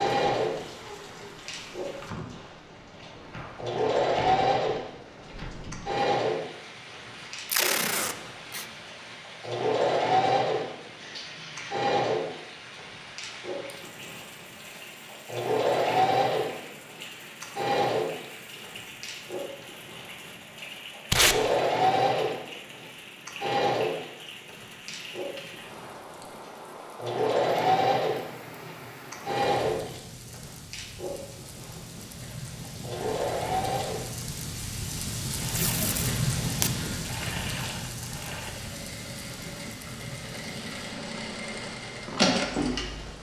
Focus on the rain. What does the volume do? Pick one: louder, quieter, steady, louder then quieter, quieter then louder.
louder.